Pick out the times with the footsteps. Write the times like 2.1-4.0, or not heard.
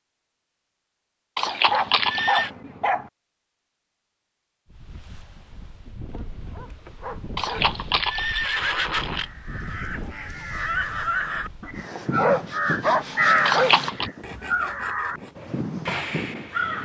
not heard.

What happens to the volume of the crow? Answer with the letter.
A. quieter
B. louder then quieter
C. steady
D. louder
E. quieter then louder
B.